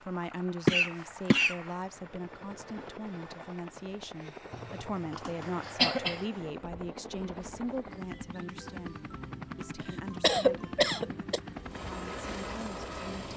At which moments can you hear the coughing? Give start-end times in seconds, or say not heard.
0.7-1.6, 4.5-6.2, 9.8-11.4.